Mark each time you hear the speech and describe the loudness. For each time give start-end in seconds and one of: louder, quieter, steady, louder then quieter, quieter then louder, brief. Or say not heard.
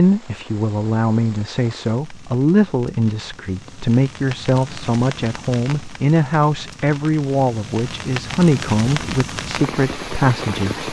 0.0-10.8 steady.